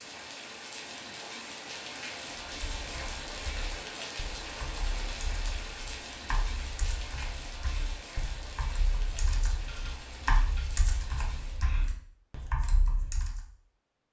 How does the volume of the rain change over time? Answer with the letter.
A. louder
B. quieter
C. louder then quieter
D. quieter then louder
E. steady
B.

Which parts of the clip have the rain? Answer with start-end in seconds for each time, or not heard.
0.0-11.7.